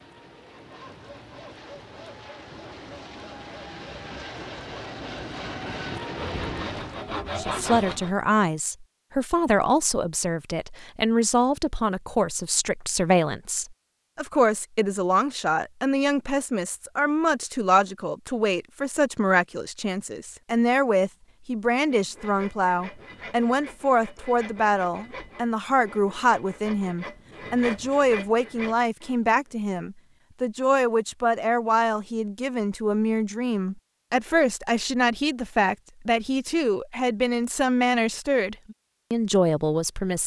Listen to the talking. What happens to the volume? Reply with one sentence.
The loudness of the talking stays about the same.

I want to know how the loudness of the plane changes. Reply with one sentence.
The loudness of the plane goes up.